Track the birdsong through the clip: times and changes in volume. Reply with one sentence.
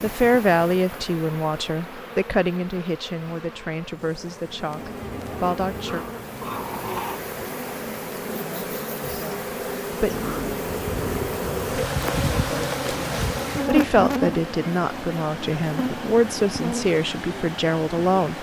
The birdsong can't be heard in this clip.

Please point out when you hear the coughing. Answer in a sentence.
The coughing can't be heard in this clip.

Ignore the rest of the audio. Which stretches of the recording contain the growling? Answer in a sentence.
The growling can be heard from 5.8 to 7.2 s and from 10.1 to 11.3 s.